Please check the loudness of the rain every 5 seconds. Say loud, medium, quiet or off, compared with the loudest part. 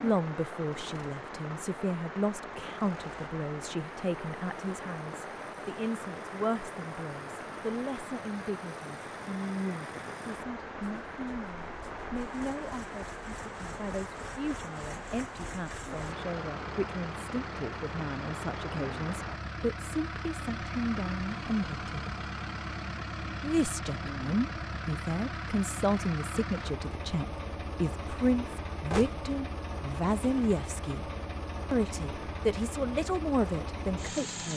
loud, loud, loud, loud, off, off, off.